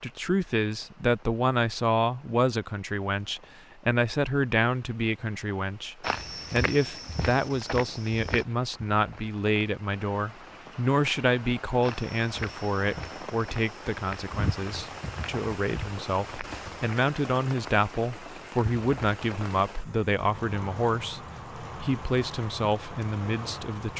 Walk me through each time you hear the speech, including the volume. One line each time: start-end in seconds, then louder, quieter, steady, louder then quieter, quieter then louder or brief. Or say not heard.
0.0-23.9 steady.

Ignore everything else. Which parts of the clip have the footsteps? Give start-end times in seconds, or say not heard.
6.0-8.4, 11.8-17.0.